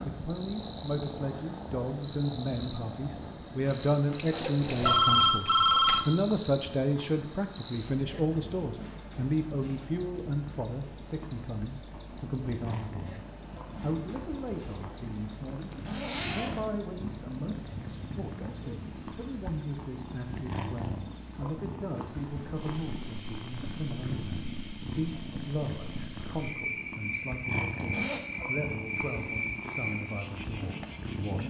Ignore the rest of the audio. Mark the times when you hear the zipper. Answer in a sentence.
You can hear the zipper from 3.6 to 5.0 s, from 15.7 to 16.7 s and from 27.8 to 28.2 s.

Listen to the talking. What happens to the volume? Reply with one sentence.
The loudness of the talking goes down.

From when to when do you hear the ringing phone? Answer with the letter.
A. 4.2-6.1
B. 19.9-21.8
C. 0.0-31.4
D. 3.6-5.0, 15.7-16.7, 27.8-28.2
A.